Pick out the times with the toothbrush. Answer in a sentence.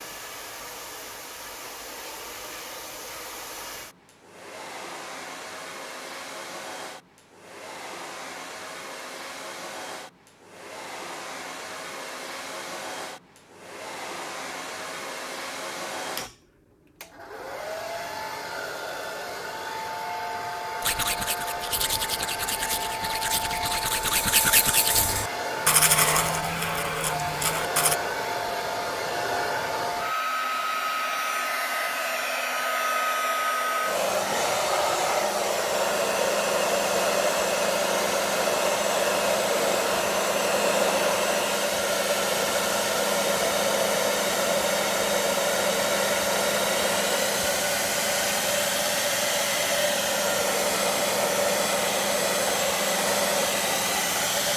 You can hear the toothbrush from 20.8 to 27.9 s.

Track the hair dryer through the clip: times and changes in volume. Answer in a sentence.
You can hear the hair dryer from 0.0 to 54.5 s, getting louder.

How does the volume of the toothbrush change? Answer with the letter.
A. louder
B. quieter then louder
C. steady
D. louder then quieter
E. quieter
D.